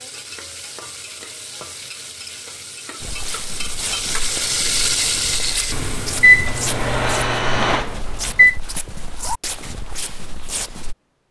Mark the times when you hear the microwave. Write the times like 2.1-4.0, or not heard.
6.2-8.6.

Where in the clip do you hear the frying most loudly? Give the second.
5 s.